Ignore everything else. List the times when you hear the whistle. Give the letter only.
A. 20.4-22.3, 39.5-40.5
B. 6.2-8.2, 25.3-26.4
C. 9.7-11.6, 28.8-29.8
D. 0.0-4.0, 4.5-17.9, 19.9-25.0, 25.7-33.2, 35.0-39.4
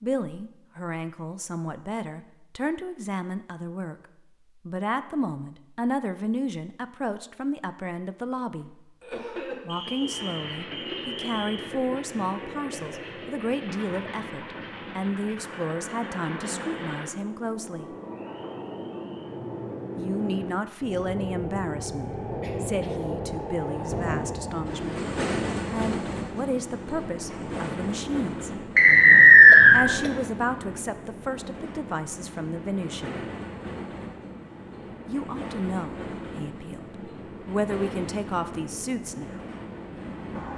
C.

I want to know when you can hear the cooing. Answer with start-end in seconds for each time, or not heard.
not heard.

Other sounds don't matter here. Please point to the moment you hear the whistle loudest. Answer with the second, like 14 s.
29 s.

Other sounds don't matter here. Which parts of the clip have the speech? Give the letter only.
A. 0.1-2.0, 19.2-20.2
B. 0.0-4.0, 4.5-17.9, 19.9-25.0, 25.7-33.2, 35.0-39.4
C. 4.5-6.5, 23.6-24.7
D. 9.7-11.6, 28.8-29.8
B.